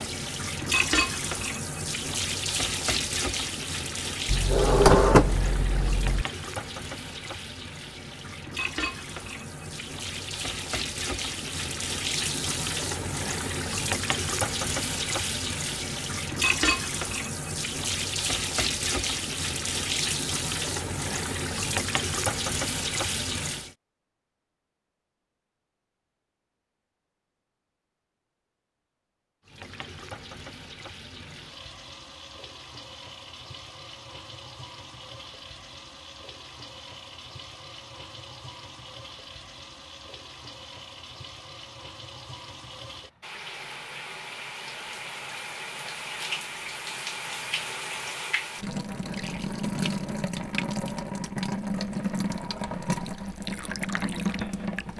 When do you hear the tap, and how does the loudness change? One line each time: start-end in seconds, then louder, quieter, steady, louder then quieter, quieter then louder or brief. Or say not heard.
0.0-23.8 quieter then louder
29.4-54.9 louder.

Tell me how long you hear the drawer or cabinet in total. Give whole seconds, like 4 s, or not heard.
2 s.